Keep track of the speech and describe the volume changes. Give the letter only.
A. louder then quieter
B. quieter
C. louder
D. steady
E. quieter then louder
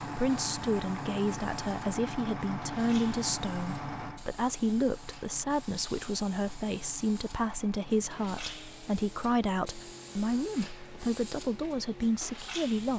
D.